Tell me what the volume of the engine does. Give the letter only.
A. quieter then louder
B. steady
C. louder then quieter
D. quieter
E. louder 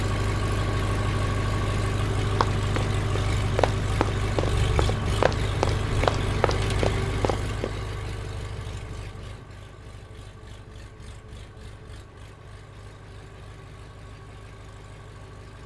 D.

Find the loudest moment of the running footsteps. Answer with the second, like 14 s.
6 s.